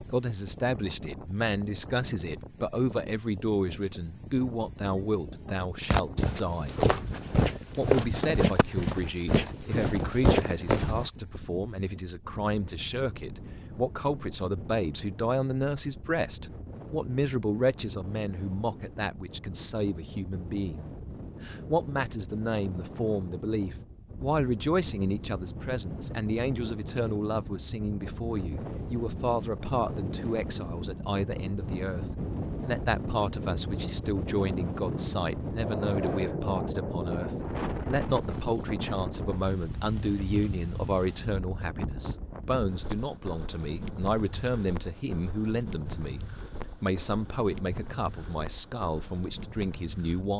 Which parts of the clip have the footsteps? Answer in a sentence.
You can hear the footsteps from 5.8 to 11.1 s.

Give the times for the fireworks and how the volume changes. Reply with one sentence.
The fireworks can't be heard in this clip.